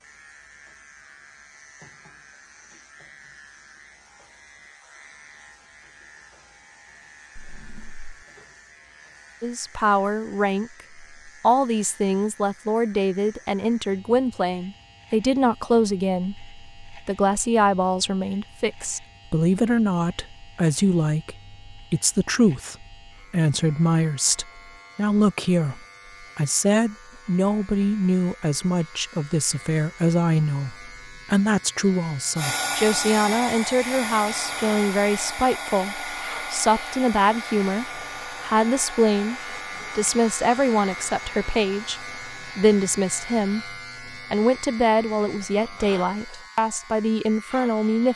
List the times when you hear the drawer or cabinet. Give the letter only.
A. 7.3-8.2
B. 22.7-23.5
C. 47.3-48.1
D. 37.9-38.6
A.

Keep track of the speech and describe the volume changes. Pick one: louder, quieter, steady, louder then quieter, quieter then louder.
steady.